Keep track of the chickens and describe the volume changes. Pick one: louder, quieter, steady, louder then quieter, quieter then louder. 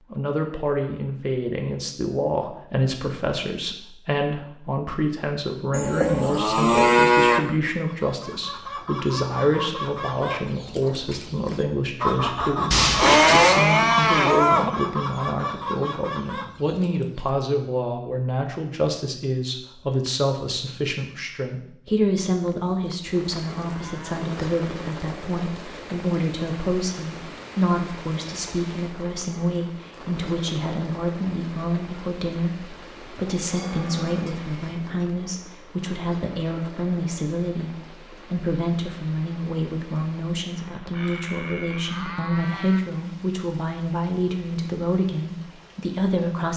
louder then quieter.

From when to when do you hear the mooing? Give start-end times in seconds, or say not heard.
5.7-7.4, 12.7-14.7, 22.4-24.2, 33.3-35.0, 40.9-42.8.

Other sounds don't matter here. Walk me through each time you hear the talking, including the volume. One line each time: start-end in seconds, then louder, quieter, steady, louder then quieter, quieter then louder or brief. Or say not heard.
0.1-46.5 steady.